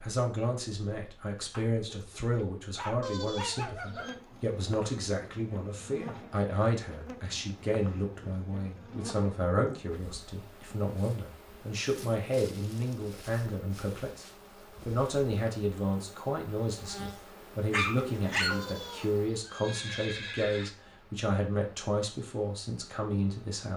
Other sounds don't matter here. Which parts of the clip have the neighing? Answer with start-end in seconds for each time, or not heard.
3.0-4.2, 18.5-20.8.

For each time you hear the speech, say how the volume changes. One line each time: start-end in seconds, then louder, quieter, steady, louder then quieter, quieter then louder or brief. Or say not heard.
0.0-14.2 steady
14.8-23.7 steady.